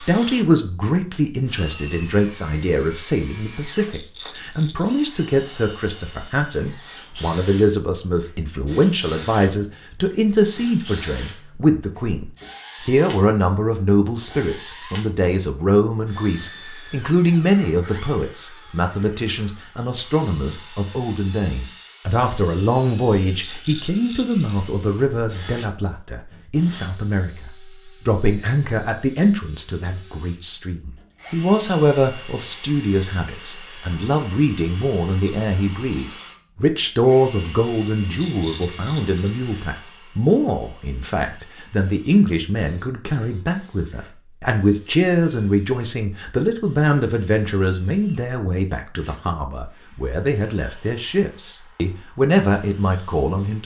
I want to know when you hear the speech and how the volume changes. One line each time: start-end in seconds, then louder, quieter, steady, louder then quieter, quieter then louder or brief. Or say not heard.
0.0-53.6 steady.